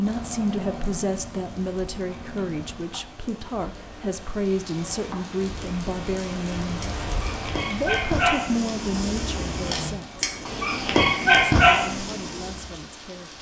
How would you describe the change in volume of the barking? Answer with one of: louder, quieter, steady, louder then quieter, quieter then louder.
louder.